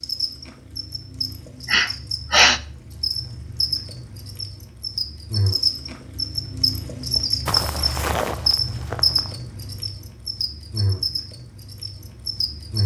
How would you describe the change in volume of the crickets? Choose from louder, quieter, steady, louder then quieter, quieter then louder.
louder then quieter.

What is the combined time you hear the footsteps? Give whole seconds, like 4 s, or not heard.
2 s.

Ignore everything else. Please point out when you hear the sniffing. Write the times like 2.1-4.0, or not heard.
1.6-2.6.